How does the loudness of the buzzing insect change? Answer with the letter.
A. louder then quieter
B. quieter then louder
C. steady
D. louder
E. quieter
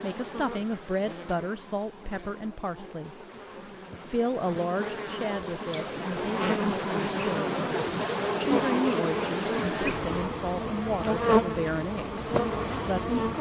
D.